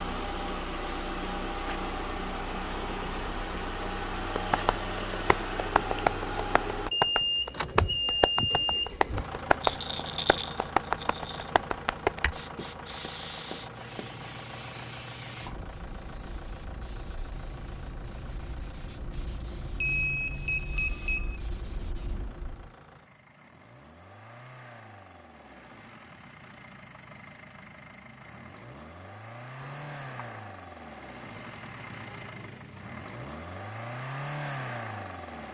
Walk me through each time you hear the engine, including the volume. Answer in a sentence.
The engine can be heard from 0.0 to 35.4 s, getting quieter then louder.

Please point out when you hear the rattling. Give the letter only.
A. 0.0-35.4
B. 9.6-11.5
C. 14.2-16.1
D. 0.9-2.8
B.